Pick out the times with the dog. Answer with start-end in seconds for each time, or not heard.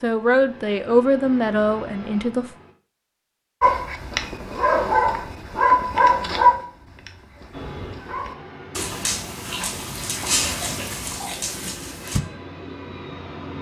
3.6-12.2.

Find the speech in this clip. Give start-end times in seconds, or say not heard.
0.0-2.5.